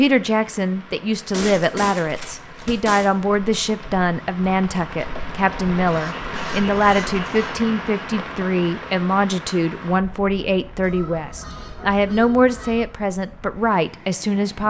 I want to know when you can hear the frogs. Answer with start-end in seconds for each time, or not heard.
not heard.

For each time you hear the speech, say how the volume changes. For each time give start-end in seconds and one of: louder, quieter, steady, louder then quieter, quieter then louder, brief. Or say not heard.
0.0-14.6 steady.